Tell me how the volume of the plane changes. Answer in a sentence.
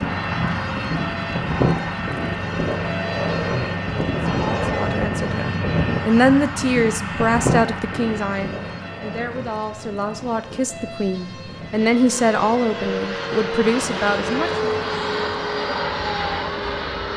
The loudness of the plane goes down, then up.